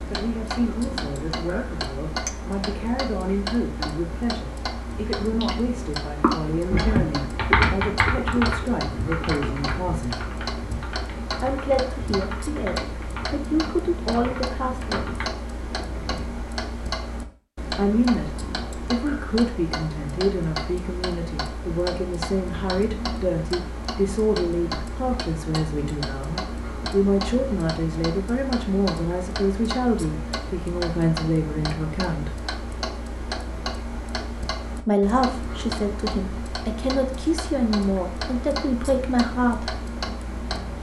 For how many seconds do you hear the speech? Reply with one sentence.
You can hear the speech for 34 seconds altogether.